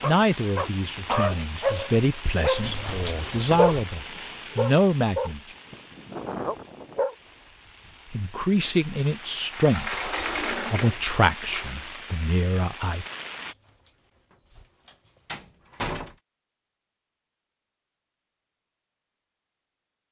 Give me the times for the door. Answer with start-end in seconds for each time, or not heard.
2.6-3.9, 9.5-11.7, 13.4-16.1.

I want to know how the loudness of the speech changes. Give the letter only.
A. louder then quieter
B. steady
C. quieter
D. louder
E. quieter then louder
B.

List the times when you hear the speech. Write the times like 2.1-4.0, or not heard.
0.0-5.4, 8.1-13.1.